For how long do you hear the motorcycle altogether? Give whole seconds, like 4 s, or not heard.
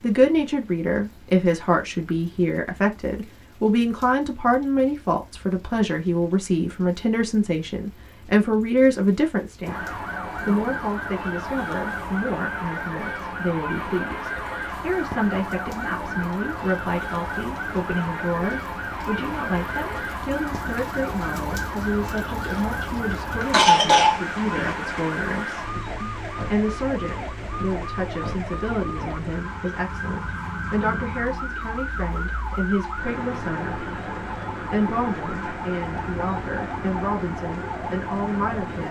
not heard.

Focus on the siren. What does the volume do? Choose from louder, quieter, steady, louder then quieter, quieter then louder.
steady.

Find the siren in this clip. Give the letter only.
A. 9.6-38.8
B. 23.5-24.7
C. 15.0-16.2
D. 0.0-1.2
A.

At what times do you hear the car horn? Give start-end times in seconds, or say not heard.
not heard.